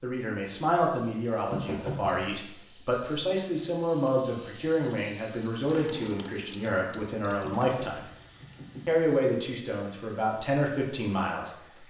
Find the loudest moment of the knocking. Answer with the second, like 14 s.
2 s.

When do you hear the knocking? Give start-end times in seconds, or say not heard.
1.5-2.4, 7.7-8.9.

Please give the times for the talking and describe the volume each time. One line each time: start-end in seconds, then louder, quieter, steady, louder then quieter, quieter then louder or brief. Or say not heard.
0.0-8.1 steady
8.8-11.8 brief.